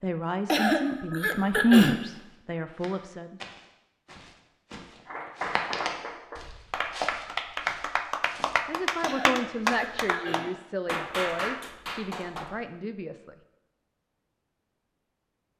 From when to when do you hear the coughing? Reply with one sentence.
The coughing can be heard from 0.5 to 2.0 s and from 9.0 to 10.5 s.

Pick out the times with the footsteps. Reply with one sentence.
The footsteps can be heard from 2.1 to 9.9 s.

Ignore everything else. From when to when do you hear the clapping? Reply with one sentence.
You can hear the clapping from 5.0 to 12.5 s.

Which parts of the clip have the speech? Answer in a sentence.
You can hear the speech from 0.0 to 3.4 s and from 8.7 to 13.3 s.